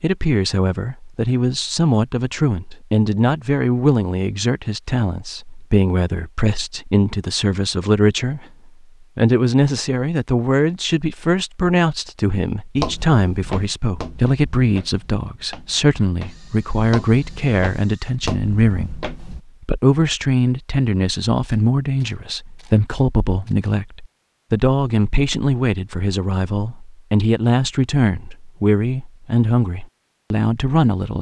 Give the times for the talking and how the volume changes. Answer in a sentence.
The talking can be heard from 0.0 to 8.4 s, at a steady volume; and from 9.2 to 31.1 s, at a steady volume.